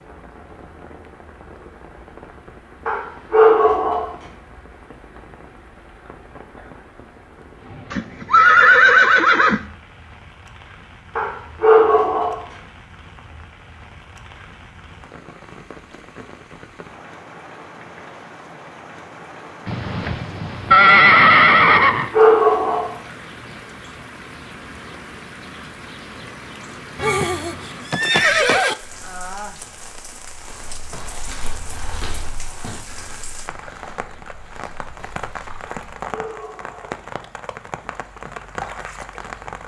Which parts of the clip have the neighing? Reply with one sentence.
The neighing can be heard from 7.9 to 9.6 s, from 19.6 to 22.1 s and from 26.9 to 28.8 s.